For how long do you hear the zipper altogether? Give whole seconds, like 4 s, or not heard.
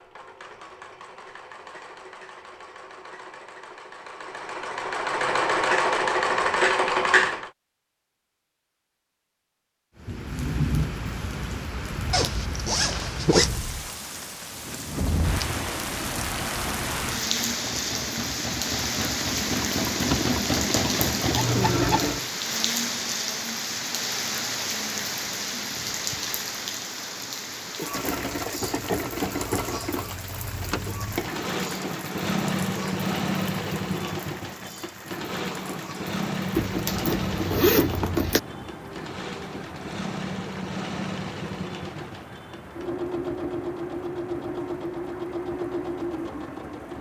3 s.